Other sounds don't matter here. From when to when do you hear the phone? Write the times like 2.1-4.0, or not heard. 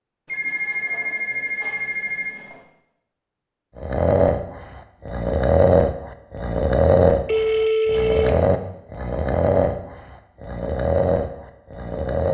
0.2-2.6, 7.2-8.3.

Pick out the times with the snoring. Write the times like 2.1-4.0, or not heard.
3.8-12.2.